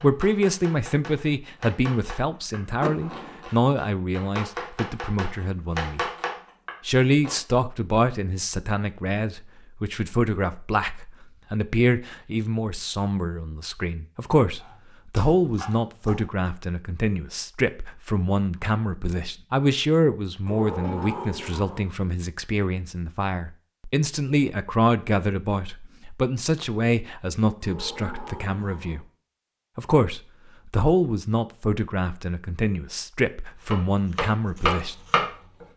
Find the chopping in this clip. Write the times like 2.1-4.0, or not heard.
0.0-7.4, 14.6-16.4, 33.6-35.6.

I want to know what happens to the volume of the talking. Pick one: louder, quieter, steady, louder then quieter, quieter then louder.
steady.